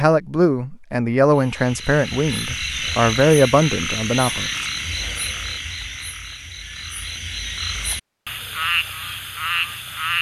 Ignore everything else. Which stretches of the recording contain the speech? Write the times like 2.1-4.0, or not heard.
0.0-4.5.